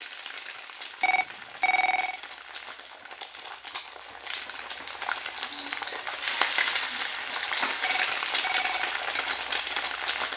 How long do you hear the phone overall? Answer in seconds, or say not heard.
2 s.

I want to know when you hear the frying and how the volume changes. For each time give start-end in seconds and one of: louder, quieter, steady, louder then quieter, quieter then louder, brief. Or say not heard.
0.0-10.3 louder.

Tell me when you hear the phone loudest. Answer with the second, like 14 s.
2 s.